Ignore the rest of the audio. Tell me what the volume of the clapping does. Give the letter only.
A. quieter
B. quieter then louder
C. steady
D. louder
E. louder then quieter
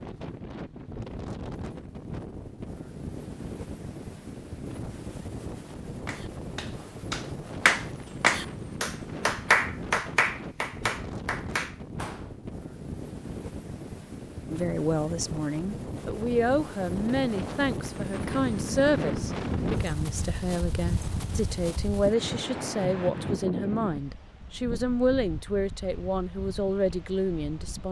E.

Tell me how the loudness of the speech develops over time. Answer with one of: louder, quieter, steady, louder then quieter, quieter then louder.
steady.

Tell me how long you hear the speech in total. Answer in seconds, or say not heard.
13 s.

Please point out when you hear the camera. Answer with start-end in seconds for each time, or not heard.
not heard.